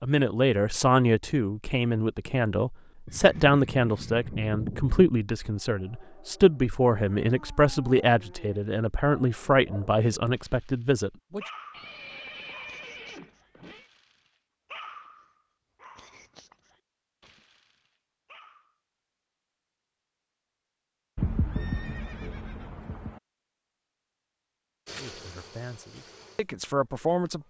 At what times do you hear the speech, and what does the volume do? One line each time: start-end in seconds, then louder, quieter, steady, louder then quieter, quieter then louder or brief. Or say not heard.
0.0-11.4 steady
25.0-27.4 brief.